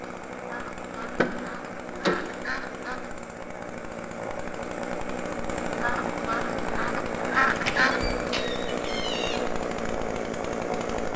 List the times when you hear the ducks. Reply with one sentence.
You can hear the ducks from 0.5 to 3.1 s and from 5.8 to 8.1 s.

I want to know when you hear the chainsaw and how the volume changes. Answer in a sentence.
You can hear the chainsaw from 0.0 to 11.1 s, getting louder.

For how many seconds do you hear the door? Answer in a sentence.
The door can be heard for 3 seconds in total.